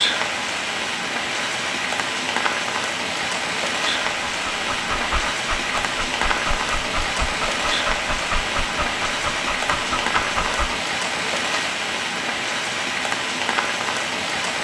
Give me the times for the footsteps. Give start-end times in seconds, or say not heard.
not heard.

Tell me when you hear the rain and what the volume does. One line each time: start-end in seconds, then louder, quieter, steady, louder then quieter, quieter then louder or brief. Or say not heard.
0.0-14.5 steady.